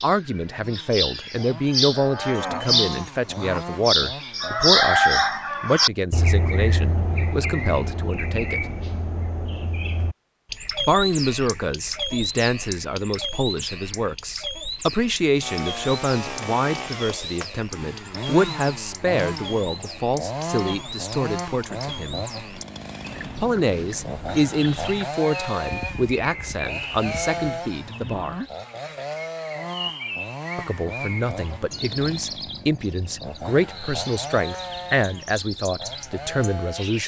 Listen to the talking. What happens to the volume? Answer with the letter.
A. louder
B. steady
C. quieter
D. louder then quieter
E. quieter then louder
B.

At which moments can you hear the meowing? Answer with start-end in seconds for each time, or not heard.
not heard.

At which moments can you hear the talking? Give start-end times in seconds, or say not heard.
0.0-8.6, 10.8-22.2, 23.4-28.4, 30.6-37.0.